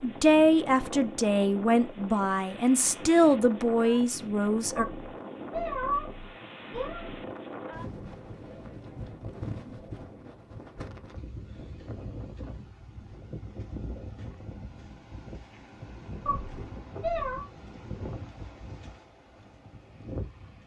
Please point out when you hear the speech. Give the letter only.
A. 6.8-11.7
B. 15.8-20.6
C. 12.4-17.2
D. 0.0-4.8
D.